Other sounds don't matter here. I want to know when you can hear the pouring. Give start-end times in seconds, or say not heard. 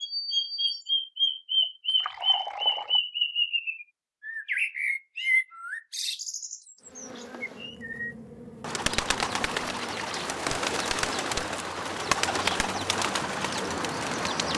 1.9-3.0, 9.4-10.3.